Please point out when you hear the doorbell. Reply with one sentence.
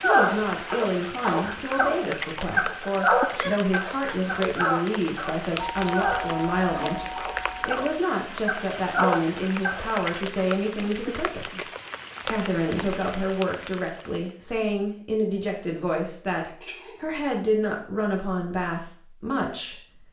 The doorbell can be heard from 5.5 to 8.1 s.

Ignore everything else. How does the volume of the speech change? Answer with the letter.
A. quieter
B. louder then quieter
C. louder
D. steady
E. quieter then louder
D.